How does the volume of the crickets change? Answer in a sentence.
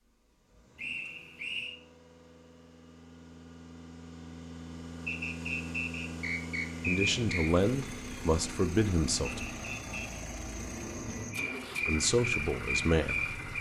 The volume of the crickets goes up.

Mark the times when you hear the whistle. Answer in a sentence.
The whistle can be heard from 0.8 to 1.8 s, from 5.0 to 7.5 s and from 9.2 to 10.2 s.